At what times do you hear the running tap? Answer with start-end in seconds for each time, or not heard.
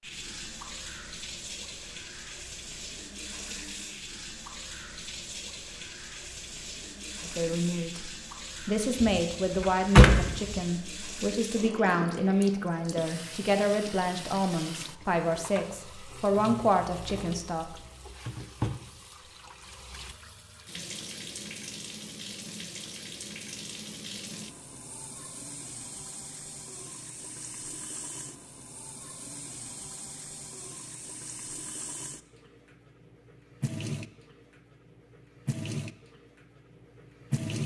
0.0-37.6.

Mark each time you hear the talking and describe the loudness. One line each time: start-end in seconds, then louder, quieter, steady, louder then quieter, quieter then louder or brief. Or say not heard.
7.2-17.8 steady.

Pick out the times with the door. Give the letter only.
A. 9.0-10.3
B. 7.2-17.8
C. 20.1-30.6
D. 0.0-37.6
A.